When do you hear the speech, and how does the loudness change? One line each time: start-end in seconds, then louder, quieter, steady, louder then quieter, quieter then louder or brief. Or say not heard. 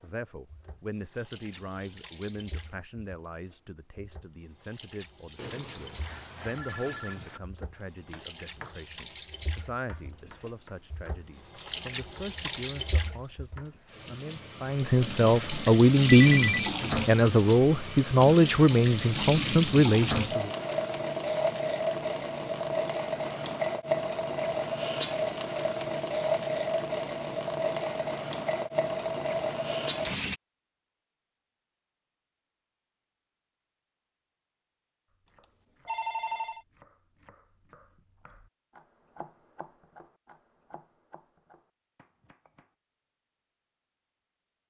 0.0-20.5 louder.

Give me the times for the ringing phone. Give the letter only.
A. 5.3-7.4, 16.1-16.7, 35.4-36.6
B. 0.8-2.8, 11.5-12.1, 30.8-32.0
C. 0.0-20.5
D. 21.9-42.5
A.